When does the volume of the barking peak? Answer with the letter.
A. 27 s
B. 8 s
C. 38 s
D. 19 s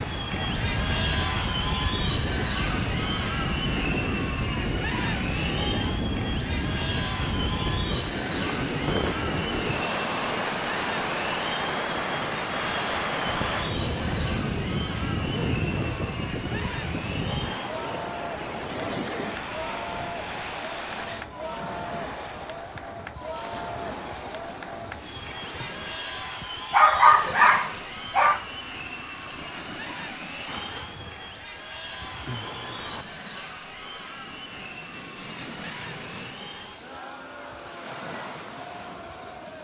A.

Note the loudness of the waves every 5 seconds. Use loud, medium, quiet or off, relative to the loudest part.
loud, loud, loud, loud, medium, quiet, quiet, quiet.